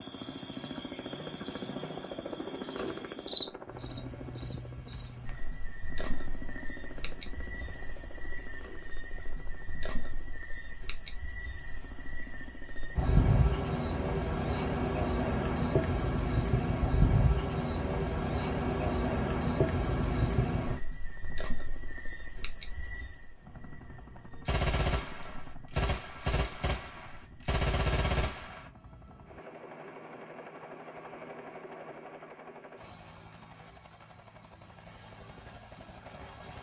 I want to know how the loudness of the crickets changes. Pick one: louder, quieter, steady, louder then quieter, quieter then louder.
quieter.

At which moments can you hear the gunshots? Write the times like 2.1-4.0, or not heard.
24.4-28.7.